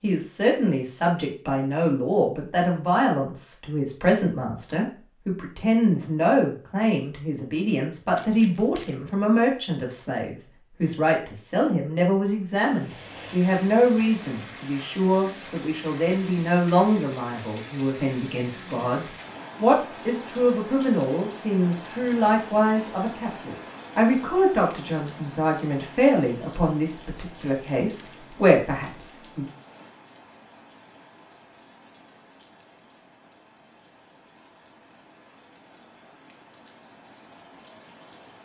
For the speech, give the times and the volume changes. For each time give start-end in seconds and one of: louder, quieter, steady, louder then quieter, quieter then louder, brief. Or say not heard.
0.0-29.4 steady.